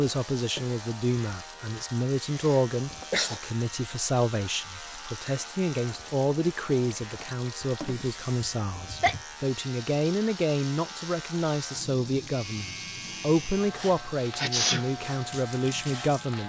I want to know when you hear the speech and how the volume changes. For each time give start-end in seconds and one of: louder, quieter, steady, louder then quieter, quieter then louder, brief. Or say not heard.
0.0-16.4 steady.